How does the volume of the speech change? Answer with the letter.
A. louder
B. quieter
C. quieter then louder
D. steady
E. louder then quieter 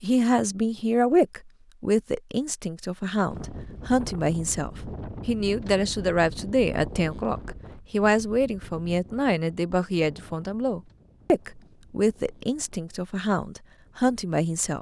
D.